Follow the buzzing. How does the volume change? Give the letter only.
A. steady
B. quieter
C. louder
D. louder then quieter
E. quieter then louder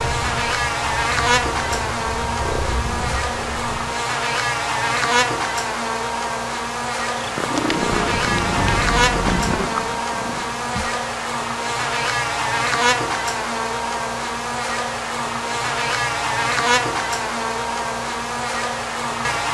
A.